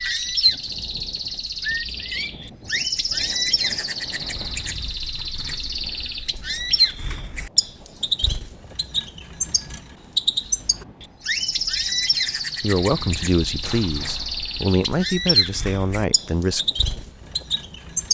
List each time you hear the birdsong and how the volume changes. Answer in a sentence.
You can hear the birdsong from 0.0 to 18.0 s, at a steady volume.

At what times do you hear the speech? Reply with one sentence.
The speech can be heard from 12.6 to 16.6 s.